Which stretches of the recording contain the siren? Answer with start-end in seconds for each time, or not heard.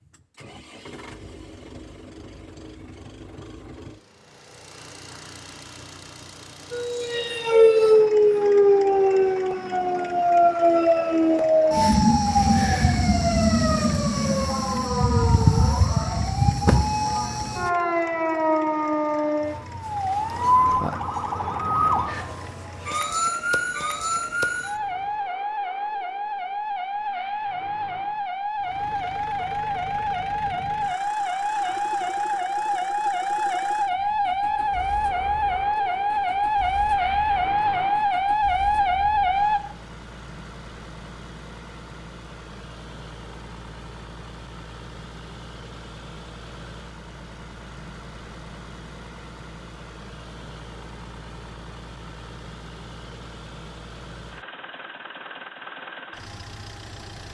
6.7-39.6.